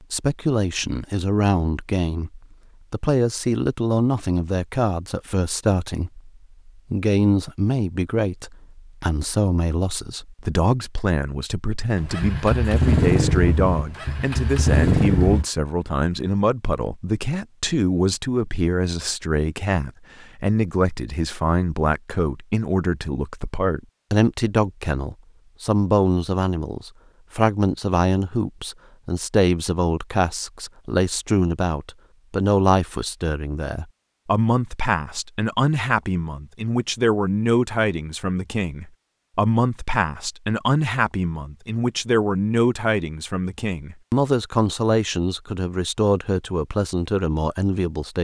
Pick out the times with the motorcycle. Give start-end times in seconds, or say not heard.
11.9-15.4.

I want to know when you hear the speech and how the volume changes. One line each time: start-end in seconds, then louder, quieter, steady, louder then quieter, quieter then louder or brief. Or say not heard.
0.1-48.2 steady.